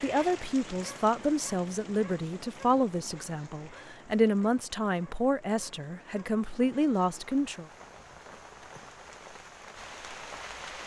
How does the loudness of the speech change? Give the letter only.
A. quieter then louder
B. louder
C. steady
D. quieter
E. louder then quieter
C.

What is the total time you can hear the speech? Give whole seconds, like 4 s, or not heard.
8 s.